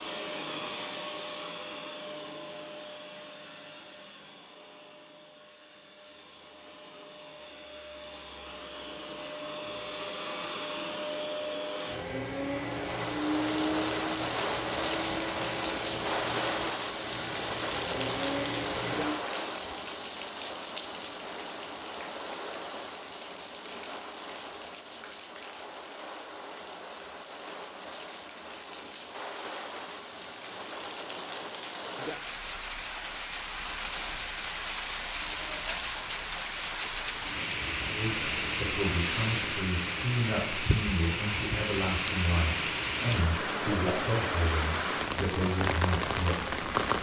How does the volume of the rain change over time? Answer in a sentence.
The volume of the rain goes down, then up.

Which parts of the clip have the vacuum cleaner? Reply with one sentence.
You can hear the vacuum cleaner from 0.0 to 19.1 s.